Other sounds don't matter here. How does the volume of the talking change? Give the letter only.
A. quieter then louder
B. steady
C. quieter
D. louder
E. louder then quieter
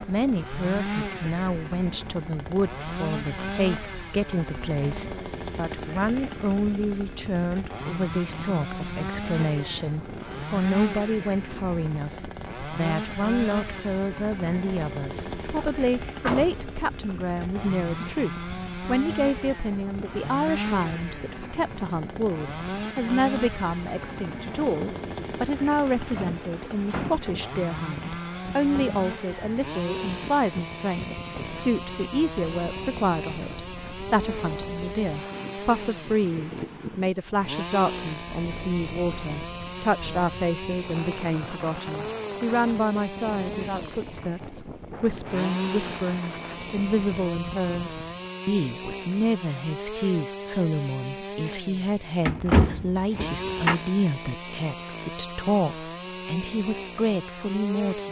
B.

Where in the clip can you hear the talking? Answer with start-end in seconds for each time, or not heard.
0.1-58.0.